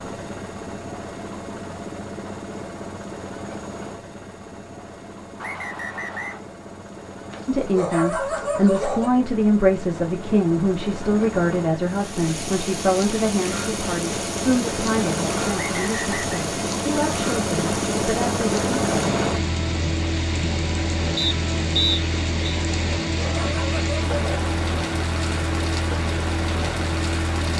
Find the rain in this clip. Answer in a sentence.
You can hear the rain from 11.8 to 27.5 s.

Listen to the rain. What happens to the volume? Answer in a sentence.
The loudness of the rain stays about the same.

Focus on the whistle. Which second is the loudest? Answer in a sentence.
The volume of the whistle peaks at 22 seconds.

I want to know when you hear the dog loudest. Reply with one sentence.
The loudest moment of the dog is at 9 seconds.